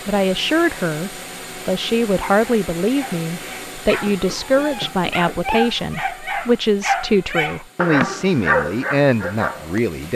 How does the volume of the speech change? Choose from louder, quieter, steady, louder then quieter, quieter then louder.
steady.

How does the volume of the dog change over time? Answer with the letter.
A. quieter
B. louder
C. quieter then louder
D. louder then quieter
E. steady
B.